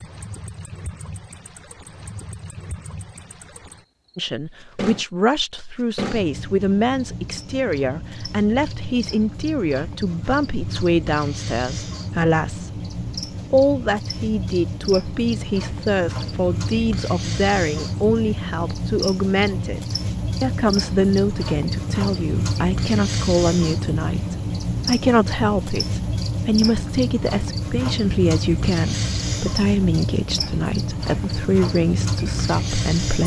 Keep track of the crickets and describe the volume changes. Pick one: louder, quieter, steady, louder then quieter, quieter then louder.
louder.